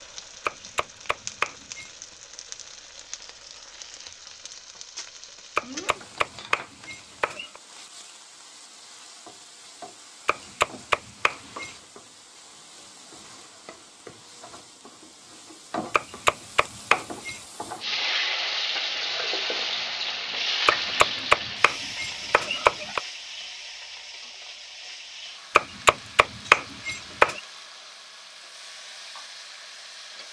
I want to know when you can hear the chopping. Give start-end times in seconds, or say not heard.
0.5-1.9, 5.5-7.6, 10.2-11.8, 15.9-17.4, 20.6-23.0, 25.6-27.4.